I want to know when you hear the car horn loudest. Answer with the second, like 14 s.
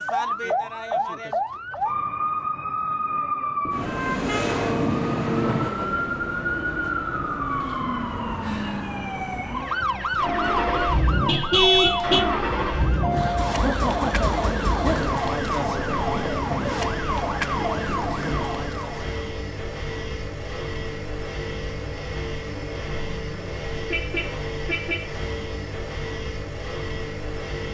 12 s.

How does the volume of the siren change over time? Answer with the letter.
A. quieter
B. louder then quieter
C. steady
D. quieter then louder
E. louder
C.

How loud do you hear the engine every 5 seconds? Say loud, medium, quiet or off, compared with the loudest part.
off, off, loud, medium, medium, medium.